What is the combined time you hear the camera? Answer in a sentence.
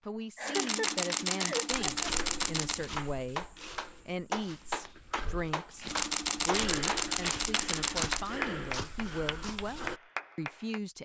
You can hear the camera for 5 seconds altogether.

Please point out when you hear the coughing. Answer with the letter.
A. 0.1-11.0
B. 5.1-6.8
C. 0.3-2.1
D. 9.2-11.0
C.